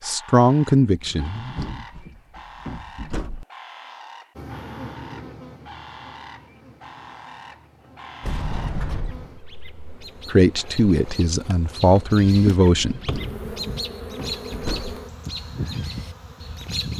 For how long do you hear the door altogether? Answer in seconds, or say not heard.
6 s.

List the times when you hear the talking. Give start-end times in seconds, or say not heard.
0.1-1.6, 10.3-13.0.